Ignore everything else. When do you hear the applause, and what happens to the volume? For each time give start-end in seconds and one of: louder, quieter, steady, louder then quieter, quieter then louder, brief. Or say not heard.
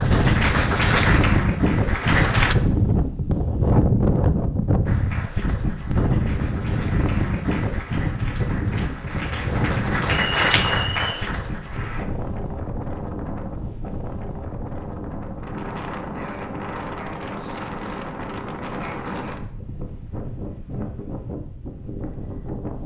0.0-2.5 brief
4.8-12.1 louder.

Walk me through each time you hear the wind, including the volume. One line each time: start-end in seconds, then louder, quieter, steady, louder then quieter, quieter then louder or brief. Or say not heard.
0.0-22.8 quieter.